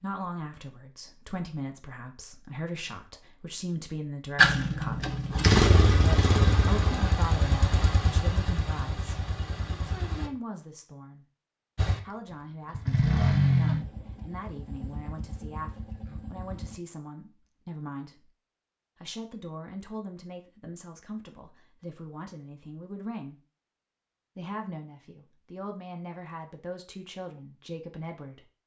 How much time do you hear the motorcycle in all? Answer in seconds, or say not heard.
11 s.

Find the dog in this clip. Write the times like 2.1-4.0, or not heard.
not heard.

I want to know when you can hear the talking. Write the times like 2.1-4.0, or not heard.
0.0-5.0, 6.0-11.2, 12.0-18.3, 19.0-23.4, 24.4-28.6.